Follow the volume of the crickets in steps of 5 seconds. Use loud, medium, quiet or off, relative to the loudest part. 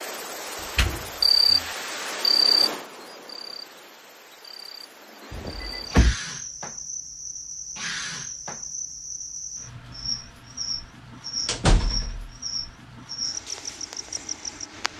loud, medium, medium.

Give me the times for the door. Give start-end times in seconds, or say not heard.
0.8-1.6, 5.3-6.2, 11.4-12.3.